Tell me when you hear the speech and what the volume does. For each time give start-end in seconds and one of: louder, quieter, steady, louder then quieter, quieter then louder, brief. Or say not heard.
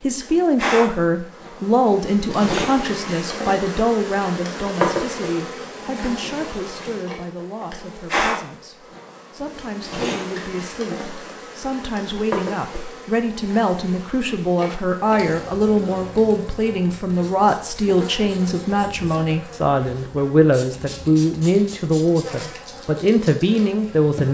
0.0-24.2 quieter then louder.